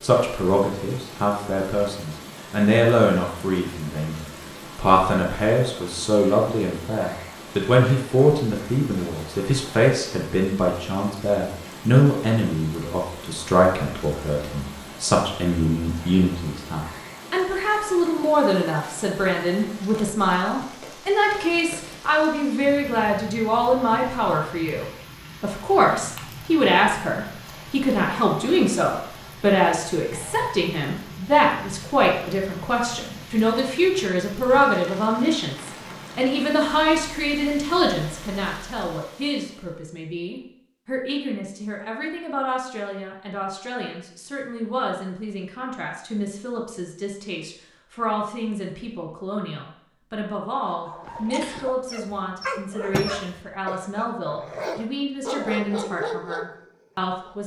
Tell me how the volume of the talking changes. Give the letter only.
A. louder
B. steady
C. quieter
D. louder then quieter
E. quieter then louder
C.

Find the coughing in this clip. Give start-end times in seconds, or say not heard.
not heard.